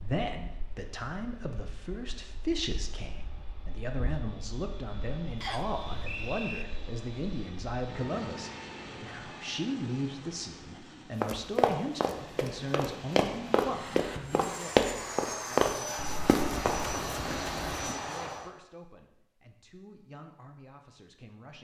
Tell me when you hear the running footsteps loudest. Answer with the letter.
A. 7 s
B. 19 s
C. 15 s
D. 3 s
C.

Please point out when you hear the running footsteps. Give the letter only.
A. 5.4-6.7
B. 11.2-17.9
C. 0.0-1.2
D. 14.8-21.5
B.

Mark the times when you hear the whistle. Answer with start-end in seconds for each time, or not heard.
5.4-6.7.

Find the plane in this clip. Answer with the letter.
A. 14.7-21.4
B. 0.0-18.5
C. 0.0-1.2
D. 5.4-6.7
B.